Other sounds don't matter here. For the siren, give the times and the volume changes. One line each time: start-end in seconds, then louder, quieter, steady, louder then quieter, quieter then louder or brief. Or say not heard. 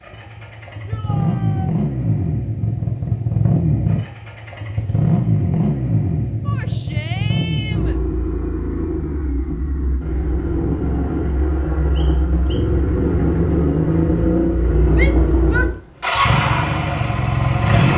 not heard.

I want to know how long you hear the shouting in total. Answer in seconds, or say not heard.
3 s.